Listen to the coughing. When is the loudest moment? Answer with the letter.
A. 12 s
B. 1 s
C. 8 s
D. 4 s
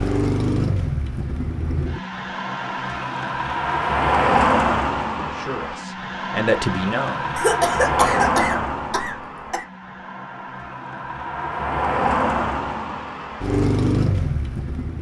C.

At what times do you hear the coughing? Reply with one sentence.
The coughing can be heard from 7.3 to 9.7 s.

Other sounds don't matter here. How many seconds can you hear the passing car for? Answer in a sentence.
You can hear the passing car for 15 seconds altogether.